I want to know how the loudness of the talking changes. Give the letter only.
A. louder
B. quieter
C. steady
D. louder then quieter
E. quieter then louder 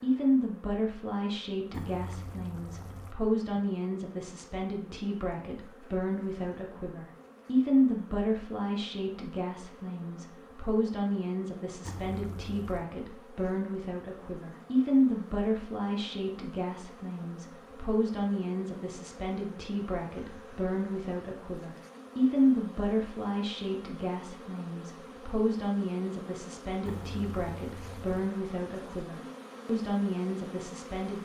C.